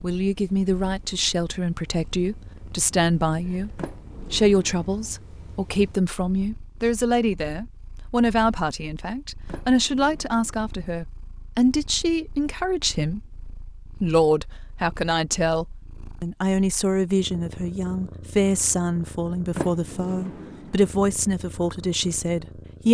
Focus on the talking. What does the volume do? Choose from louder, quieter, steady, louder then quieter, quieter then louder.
steady.